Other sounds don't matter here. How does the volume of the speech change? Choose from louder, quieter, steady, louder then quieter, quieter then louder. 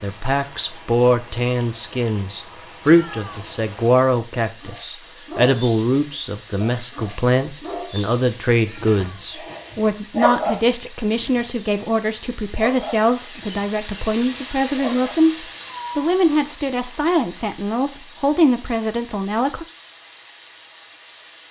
steady.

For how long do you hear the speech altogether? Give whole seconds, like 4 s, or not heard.
20 s.